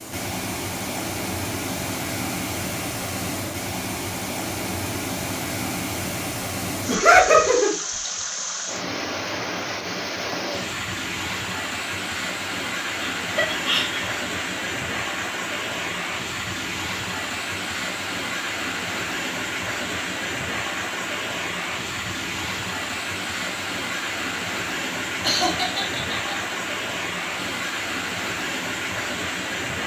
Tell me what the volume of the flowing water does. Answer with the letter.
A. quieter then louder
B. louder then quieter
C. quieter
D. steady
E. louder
D.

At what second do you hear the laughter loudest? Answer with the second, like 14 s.
7 s.